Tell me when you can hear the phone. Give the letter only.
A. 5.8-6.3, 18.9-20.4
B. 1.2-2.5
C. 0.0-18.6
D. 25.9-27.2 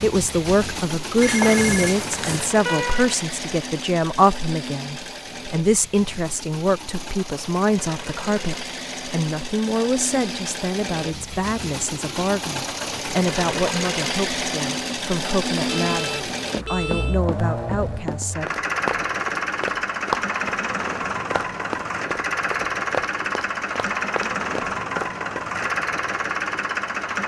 B.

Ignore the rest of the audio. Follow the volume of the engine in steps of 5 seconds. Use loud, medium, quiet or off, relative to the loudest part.
medium, medium, loud, loud, loud, loud.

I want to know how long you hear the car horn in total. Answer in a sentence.
You can hear the car horn for 2 seconds altogether.